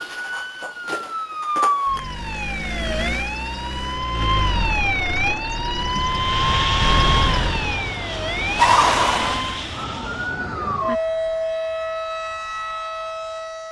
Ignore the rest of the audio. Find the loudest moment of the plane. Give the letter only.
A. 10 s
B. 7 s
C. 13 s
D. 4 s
B.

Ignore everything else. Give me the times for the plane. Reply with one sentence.
The plane can be heard from 6.0 to 10.5 s.